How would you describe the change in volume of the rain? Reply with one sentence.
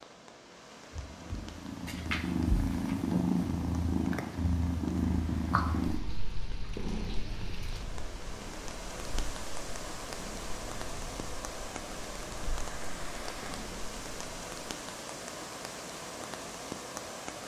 The volume of the rain goes up.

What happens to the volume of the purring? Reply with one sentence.
The volume of the purring goes down.